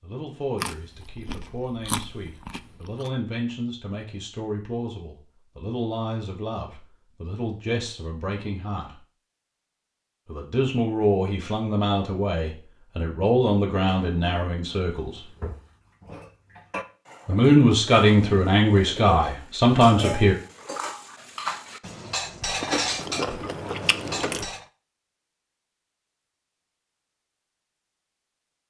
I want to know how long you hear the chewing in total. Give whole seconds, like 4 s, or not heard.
4 s.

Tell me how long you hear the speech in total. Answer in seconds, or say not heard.
17 s.